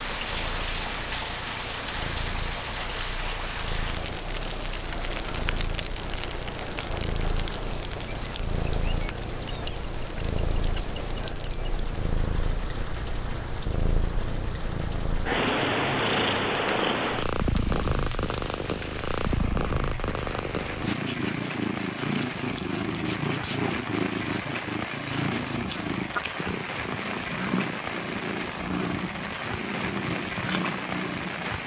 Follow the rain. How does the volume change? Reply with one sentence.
The volume of the rain goes down, then up.